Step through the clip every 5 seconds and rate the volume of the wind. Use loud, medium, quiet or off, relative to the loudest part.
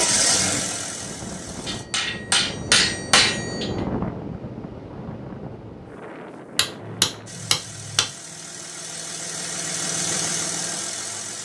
loud, medium, off.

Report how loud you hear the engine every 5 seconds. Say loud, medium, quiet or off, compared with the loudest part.
loud, medium, loud.